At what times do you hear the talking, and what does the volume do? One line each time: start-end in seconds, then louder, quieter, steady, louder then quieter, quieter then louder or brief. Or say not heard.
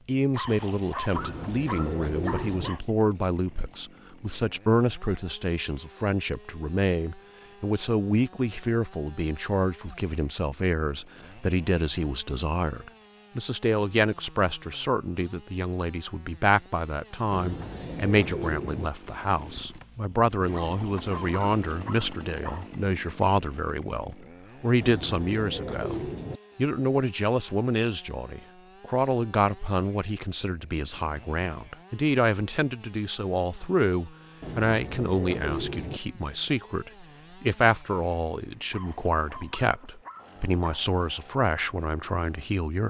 0.1-42.8 steady.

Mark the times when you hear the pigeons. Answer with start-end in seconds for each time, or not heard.
1.1-2.7, 17.3-18.9, 24.8-26.4, 34.4-36.0.